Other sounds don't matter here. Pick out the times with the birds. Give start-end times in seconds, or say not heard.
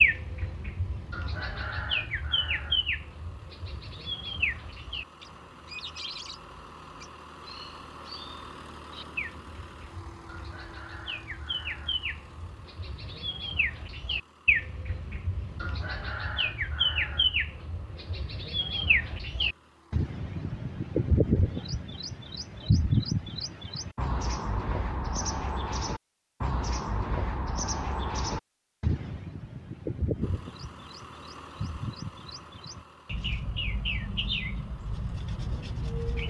0.0-36.2.